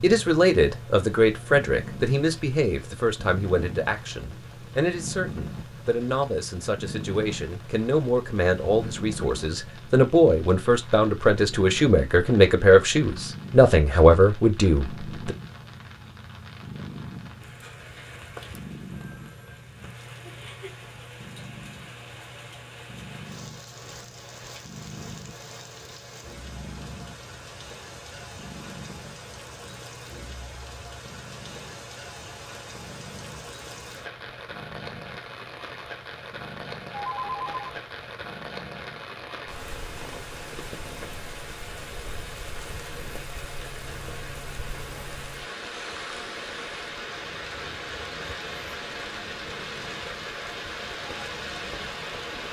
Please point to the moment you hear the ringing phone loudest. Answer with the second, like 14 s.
37 s.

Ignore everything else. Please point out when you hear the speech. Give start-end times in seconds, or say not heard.
0.0-15.3.